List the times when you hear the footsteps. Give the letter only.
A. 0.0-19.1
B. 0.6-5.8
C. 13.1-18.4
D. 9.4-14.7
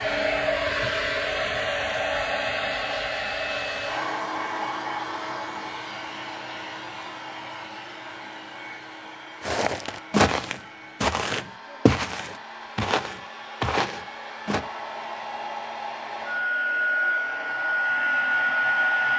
D.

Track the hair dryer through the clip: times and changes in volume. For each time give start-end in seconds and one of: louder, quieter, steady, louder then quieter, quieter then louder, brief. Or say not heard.
0.0-19.1 quieter then louder.